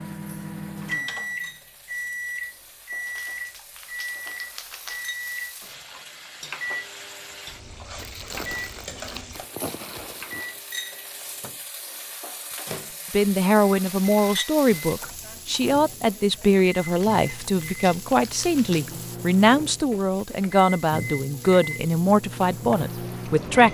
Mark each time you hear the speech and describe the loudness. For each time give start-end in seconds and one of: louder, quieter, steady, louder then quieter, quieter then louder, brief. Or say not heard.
13.1-23.7 steady.